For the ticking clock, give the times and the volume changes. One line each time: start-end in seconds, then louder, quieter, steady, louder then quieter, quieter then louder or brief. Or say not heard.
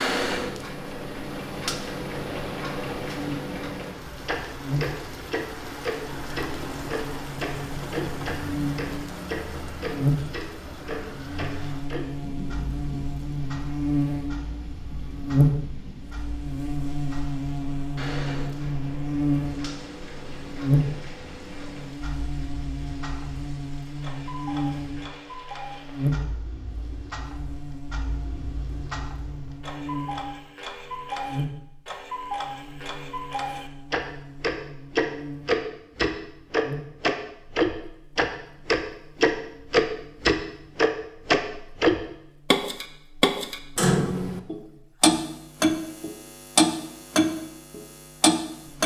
0.0-48.8 quieter then louder.